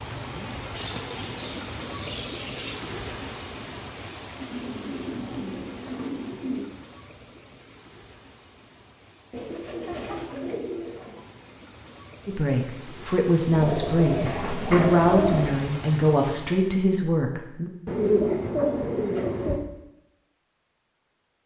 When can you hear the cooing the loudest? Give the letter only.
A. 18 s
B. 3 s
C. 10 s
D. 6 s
A.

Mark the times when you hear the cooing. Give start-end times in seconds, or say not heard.
0.8-2.8, 4.3-6.7, 9.3-11.2, 13.5-15.6, 17.9-19.6.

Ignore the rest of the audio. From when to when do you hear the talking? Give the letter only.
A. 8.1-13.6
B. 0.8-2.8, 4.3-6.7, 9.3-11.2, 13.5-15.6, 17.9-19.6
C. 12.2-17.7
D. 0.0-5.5
C.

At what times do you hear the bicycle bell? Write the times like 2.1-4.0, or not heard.
not heard.